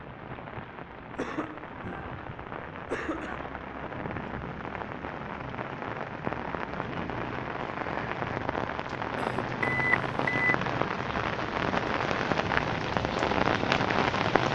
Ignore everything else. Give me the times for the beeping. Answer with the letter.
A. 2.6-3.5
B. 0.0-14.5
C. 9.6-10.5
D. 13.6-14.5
C.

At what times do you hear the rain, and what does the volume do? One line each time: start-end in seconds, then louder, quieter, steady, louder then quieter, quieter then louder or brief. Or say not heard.
0.0-14.5 louder.